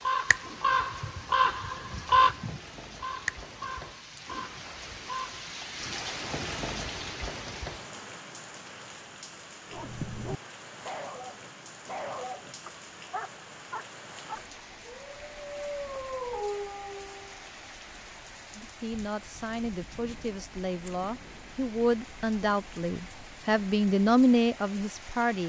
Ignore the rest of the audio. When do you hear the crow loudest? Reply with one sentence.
The loudest moment of the crow is at 2 seconds.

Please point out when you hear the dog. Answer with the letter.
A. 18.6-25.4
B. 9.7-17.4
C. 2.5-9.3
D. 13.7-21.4
B.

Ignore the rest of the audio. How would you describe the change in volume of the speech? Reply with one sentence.
The volume of the speech goes up.